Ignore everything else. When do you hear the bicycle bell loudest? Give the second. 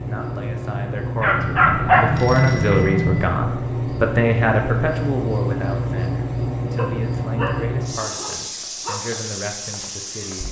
3 s.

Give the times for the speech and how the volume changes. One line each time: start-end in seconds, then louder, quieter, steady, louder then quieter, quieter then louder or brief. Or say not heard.
0.0-10.4 louder then quieter.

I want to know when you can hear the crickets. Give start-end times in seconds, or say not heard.
0.0-10.4.